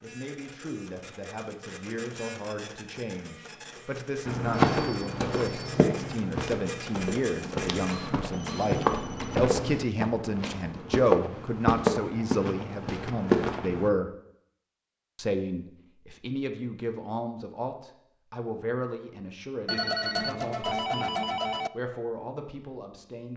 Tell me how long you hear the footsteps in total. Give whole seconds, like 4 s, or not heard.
10 s.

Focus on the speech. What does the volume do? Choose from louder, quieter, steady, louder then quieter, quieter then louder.
louder then quieter.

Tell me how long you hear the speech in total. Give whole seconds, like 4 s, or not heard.
22 s.